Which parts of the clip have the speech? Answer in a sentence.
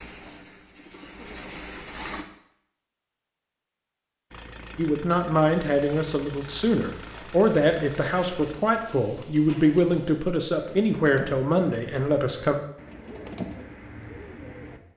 You can hear the speech from 4.8 to 12.6 s.